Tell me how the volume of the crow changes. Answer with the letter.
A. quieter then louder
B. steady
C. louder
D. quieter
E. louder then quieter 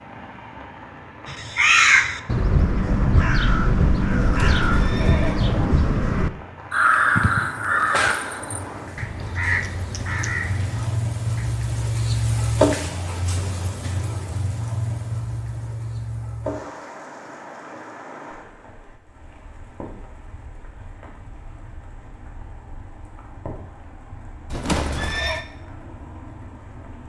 D.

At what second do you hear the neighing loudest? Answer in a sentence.
The volume of the neighing peaks at 25 seconds.